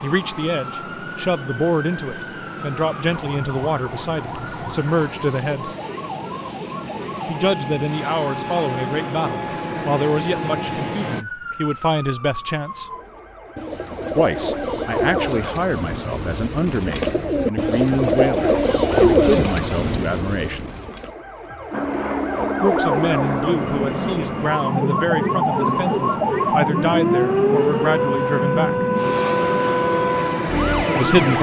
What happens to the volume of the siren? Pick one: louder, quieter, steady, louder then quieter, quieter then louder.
louder.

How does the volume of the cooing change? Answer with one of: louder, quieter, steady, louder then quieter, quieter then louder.
louder then quieter.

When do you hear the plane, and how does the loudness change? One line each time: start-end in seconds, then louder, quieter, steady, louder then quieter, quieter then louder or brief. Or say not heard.
0.0-11.2 louder
21.7-31.3 steady.